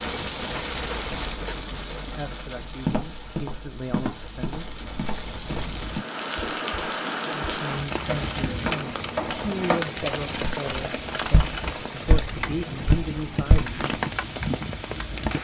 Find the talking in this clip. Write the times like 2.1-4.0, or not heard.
2.0-4.7, 7.2-13.9.